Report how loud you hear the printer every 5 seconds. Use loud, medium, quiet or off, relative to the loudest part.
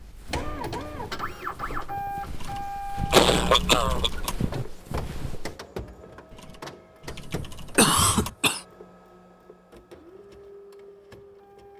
loud, medium, quiet.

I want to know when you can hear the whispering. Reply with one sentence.
You can't hear the whispering here.